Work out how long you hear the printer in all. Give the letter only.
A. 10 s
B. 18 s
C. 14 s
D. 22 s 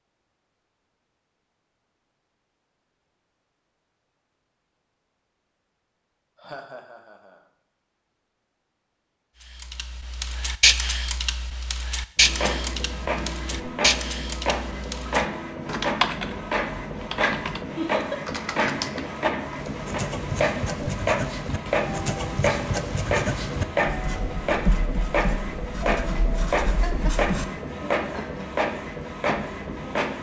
B.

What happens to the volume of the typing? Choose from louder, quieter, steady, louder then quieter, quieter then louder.
quieter.